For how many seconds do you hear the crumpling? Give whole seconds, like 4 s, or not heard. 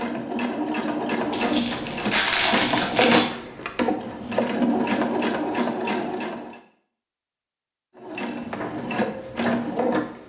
2 s.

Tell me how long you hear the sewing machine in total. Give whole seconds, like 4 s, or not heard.
9 s.